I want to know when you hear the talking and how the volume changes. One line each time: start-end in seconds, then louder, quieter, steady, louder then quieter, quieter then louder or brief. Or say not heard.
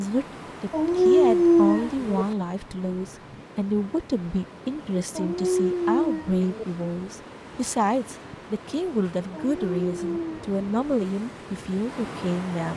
0.0-12.7 steady.